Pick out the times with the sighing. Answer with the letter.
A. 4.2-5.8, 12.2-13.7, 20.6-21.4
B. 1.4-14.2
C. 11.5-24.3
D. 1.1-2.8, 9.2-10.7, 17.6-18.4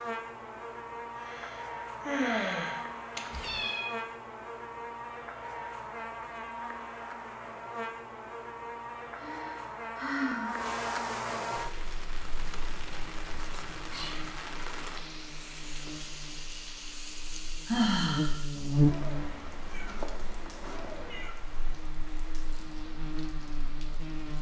D.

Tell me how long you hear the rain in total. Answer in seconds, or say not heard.
13 s.